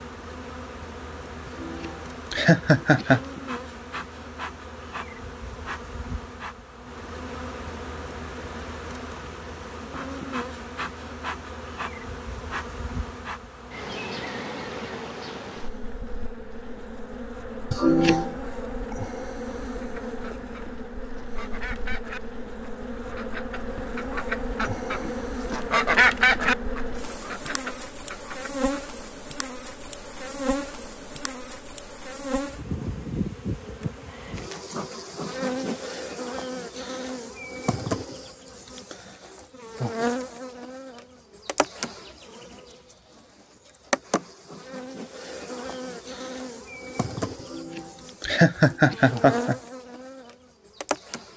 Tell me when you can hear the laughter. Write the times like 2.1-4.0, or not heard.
1.6-3.2, 17.7-18.4, 47.5-49.5.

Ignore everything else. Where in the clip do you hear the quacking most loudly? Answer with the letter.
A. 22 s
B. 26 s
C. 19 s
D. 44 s
B.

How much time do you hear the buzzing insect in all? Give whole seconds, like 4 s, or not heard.
51 s.